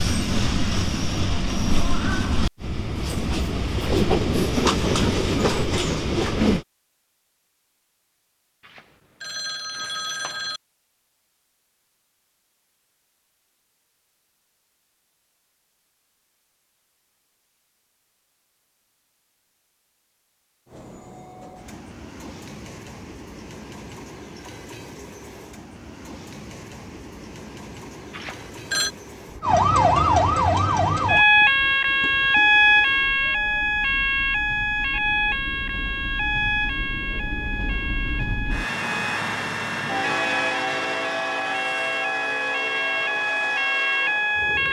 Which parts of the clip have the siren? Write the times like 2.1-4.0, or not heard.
29.4-44.6.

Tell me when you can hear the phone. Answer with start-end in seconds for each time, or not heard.
8.7-10.6, 28.1-28.9.